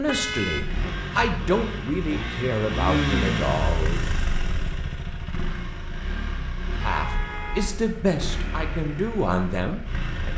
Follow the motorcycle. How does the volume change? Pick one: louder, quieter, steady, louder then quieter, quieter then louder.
louder then quieter.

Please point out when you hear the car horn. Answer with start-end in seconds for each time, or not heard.
0.1-0.9, 6.8-7.8.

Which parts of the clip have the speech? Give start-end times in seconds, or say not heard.
0.0-4.0, 6.8-10.3.